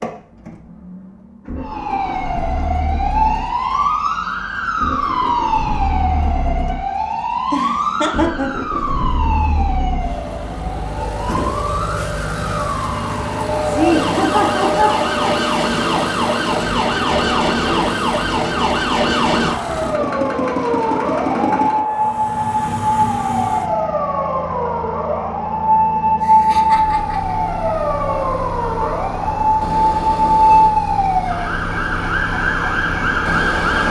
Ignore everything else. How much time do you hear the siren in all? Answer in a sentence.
You can hear the siren for 32 seconds altogether.